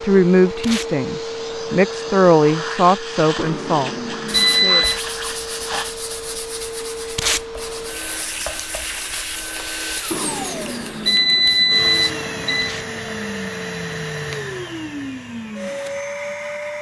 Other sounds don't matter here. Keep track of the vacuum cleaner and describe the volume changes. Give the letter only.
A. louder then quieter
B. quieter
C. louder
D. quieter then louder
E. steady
E.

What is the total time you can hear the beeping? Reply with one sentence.
The beeping can be heard for 4 seconds in total.